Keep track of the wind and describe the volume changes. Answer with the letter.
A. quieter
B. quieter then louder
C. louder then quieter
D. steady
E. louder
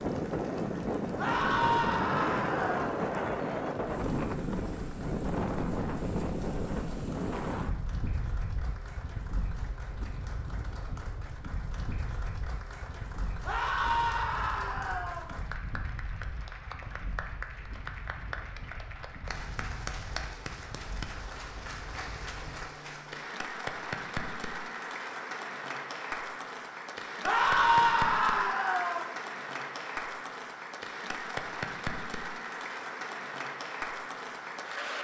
A.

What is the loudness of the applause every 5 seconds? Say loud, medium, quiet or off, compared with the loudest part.
quiet, quiet, medium, medium, loud, loud, loud.